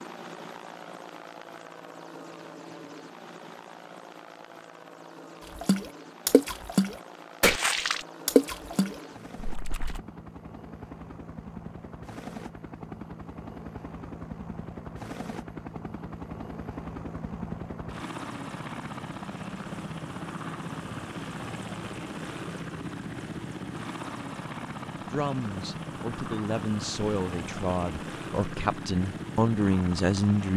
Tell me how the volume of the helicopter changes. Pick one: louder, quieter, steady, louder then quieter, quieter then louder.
louder.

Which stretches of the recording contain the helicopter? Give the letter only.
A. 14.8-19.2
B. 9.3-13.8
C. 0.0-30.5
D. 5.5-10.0
C.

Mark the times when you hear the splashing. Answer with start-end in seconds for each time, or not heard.
5.5-10.0.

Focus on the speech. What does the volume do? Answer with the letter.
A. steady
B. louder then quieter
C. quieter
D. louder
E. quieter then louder
D.